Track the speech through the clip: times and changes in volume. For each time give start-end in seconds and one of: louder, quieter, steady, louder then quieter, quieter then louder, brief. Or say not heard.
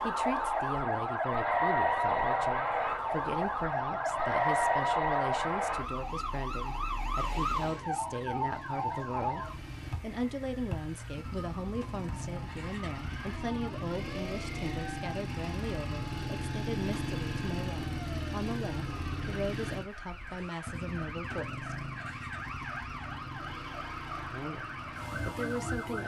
0.0-21.8 steady
24.3-26.0 brief.